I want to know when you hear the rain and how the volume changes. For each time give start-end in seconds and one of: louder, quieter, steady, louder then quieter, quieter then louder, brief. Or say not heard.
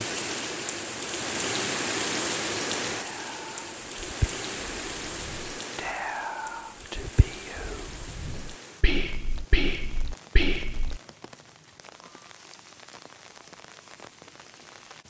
0.0-15.0 quieter.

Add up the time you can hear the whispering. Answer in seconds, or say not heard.
8 s.